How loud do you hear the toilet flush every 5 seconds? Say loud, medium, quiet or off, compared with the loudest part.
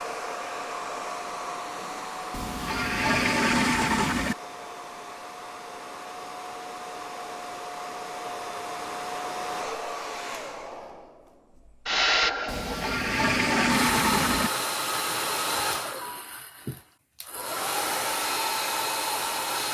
loud, off, loud, off.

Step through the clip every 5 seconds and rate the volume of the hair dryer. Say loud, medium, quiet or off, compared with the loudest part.
medium, medium, loud, loud.